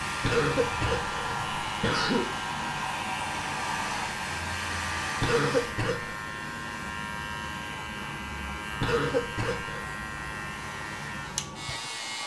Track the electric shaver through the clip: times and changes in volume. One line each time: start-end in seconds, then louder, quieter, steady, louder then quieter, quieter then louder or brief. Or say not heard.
0.0-12.2 steady.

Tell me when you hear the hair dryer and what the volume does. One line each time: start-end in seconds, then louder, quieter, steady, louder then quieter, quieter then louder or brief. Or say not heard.
0.0-12.2 quieter.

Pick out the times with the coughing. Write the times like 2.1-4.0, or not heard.
0.2-2.2, 5.2-6.2, 8.8-9.8.